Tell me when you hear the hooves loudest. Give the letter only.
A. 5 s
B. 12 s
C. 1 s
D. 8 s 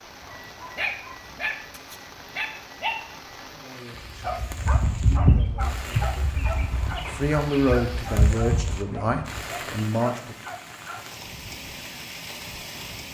A.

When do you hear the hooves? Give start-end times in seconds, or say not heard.
4.0-9.8.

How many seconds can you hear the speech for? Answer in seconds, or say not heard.
7 s.